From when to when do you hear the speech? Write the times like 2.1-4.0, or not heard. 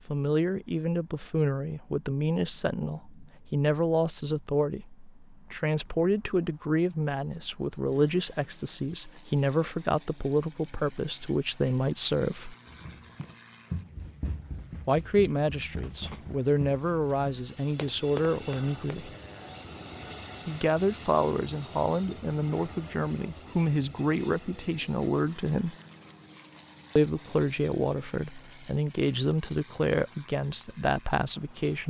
0.1-12.6, 14.8-19.1, 20.4-25.8, 26.9-31.8.